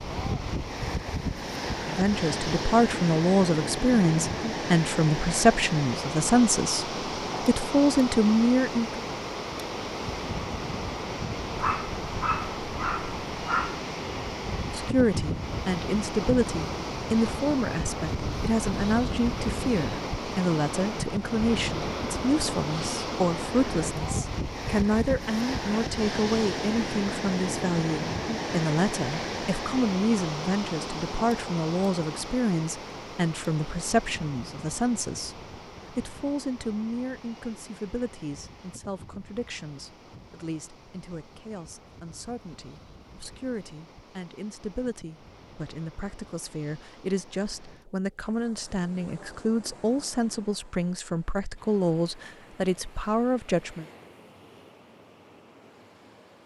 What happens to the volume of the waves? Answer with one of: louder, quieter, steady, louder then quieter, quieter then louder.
quieter.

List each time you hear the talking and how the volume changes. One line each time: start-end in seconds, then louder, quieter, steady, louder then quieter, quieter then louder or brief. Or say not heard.
1.9-9.0 steady
14.7-53.9 quieter then louder.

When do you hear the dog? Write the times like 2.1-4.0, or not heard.
11.6-13.8.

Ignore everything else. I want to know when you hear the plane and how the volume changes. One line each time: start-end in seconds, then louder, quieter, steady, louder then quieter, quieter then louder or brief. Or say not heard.
not heard.